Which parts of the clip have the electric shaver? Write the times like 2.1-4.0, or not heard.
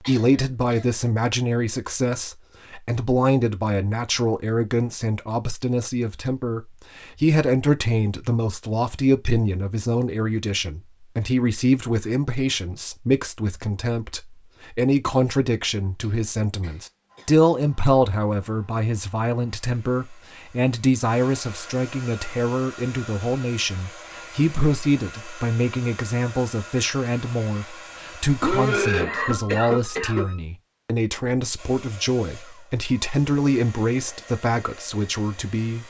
not heard.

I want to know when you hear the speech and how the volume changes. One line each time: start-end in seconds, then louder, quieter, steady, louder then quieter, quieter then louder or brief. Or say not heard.
0.0-35.8 steady.